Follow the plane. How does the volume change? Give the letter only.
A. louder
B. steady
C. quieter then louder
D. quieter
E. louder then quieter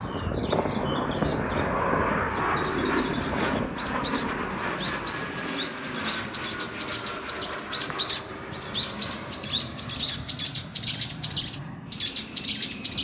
D.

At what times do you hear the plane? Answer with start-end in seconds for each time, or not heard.
0.0-12.9.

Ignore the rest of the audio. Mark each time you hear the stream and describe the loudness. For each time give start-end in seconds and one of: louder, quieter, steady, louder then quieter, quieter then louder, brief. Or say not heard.
not heard.